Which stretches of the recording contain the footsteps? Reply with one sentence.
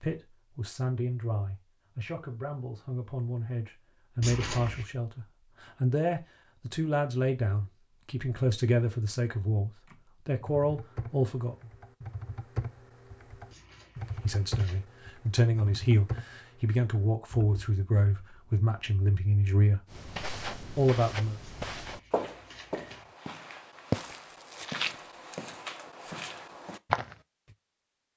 The footsteps can be heard from 19.9 to 27.1 s.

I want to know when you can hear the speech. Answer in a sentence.
You can hear the speech from 0.0 to 11.6 s, from 14.2 to 19.8 s and from 20.8 to 21.4 s.